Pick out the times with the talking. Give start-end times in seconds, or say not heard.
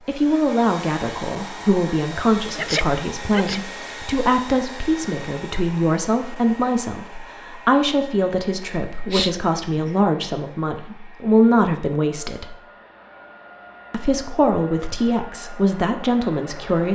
0.1-12.6, 13.9-16.8.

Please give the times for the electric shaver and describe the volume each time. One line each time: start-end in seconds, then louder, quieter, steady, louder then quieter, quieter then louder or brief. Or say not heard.
not heard.